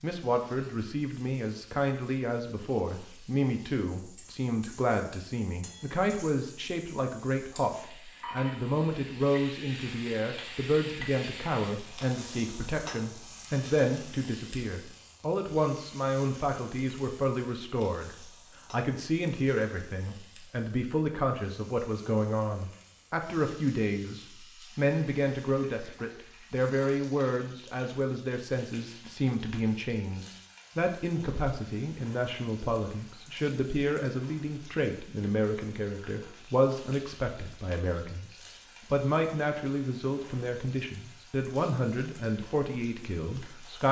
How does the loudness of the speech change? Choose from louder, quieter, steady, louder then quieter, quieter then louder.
steady.